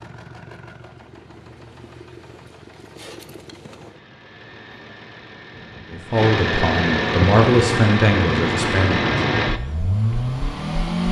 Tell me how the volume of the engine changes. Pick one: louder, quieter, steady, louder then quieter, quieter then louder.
louder.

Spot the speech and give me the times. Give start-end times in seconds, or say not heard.
5.9-9.1.